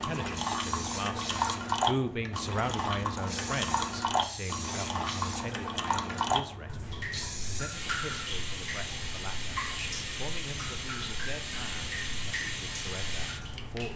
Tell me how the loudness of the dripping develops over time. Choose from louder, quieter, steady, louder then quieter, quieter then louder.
quieter.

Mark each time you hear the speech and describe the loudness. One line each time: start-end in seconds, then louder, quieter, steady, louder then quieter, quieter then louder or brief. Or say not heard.
0.0-13.9 quieter.